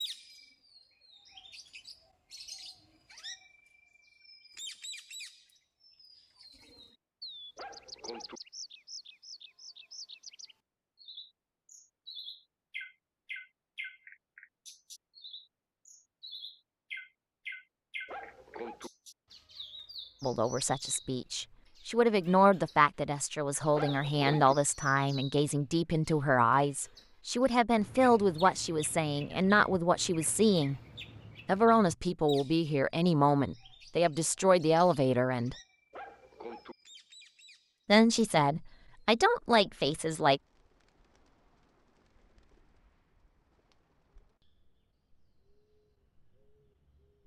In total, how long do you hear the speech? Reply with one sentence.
The speech can be heard for 17 seconds in total.